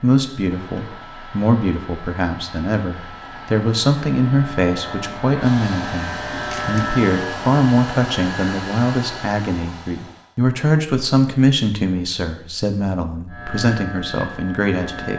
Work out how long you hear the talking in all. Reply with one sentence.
The talking can be heard for 15 seconds in total.